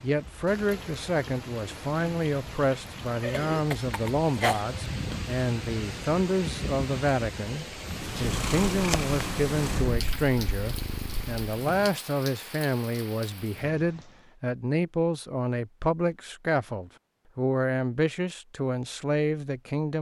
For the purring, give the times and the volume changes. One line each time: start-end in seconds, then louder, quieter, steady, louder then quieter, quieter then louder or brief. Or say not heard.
7.8-11.9 quieter.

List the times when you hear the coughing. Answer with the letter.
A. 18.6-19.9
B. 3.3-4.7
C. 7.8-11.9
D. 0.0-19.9
B.